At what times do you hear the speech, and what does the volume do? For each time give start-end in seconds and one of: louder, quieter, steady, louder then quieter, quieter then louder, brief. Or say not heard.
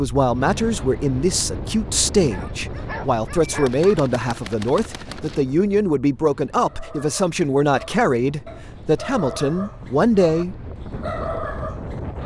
0.0-11.0 steady.